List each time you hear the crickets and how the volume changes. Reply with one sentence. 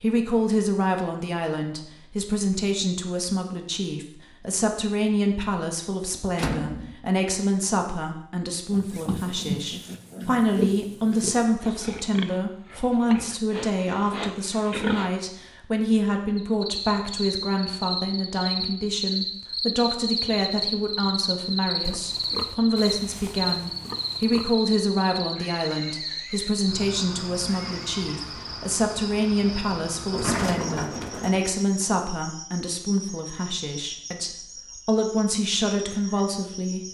You can hear the crickets from 16.4 to 36.8 s, getting quieter.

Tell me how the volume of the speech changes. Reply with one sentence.
The loudness of the speech stays about the same.